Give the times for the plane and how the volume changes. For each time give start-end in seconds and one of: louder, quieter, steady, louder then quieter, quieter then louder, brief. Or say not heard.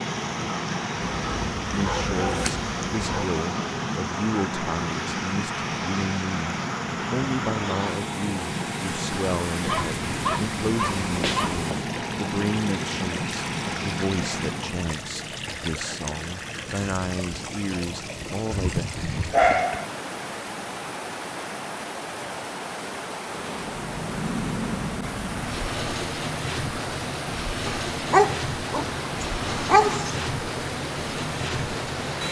0.0-14.9 steady
23.2-32.2 steady.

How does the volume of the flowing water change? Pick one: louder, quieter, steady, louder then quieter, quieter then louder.
steady.